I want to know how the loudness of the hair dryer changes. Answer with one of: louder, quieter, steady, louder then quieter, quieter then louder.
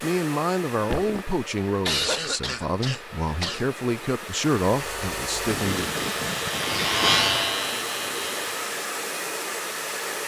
louder.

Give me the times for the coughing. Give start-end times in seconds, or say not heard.
1.9-3.6.